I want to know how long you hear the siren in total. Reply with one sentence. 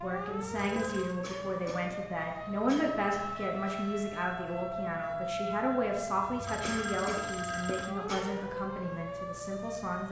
The siren can be heard for 10 seconds in total.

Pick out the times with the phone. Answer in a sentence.
The phone can be heard from 0.5 to 1.2 s and from 6.2 to 8.0 s.